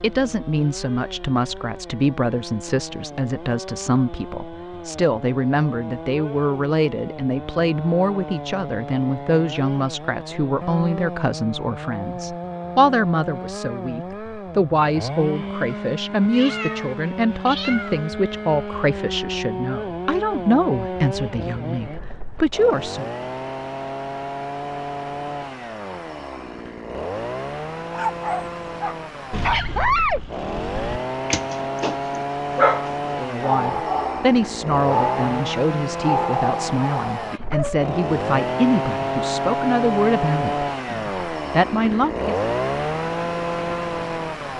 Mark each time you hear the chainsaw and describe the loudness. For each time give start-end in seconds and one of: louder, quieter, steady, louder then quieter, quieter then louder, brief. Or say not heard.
0.0-44.5 louder.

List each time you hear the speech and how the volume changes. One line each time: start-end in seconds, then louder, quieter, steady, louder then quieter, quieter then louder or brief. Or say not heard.
0.0-23.1 steady
33.2-42.4 steady.